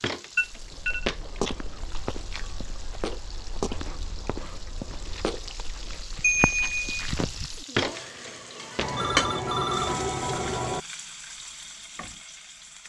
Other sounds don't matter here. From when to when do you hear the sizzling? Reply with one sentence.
The sizzling can be heard from 0.0 to 12.8 s.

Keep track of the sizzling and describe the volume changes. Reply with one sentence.
The volume of the sizzling goes up, then down.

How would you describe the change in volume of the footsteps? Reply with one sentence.
The loudness of the footsteps goes down, then up.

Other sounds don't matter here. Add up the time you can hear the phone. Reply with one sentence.
The phone can be heard for 3 seconds in total.